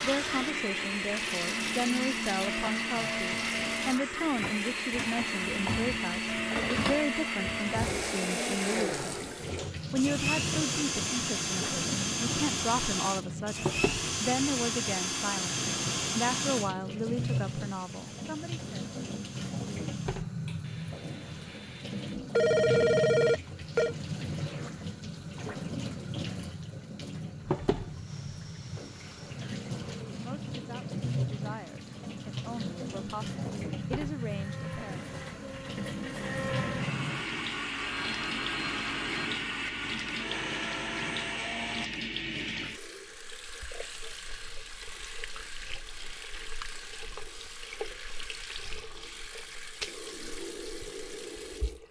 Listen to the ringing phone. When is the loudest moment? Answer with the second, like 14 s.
23 s.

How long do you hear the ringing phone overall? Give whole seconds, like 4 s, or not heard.
3 s.